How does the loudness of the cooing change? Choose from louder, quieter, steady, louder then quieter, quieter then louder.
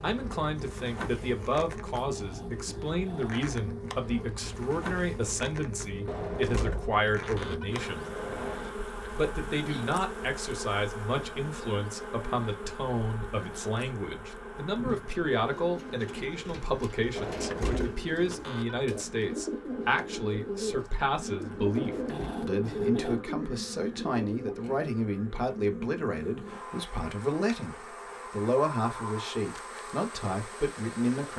louder.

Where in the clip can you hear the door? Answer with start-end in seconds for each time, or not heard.
6.0-8.8, 17.1-18.9, 21.7-22.4.